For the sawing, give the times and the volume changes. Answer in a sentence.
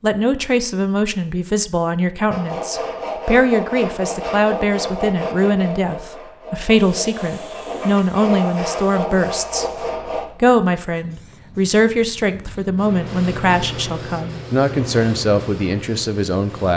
The sawing can be heard from 2.3 to 10.2 s, getting quieter then louder.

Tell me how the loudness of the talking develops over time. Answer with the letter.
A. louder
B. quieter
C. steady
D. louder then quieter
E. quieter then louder
C.